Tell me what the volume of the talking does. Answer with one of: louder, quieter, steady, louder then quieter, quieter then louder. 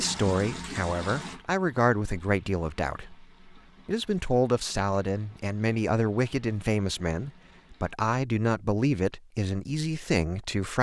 steady.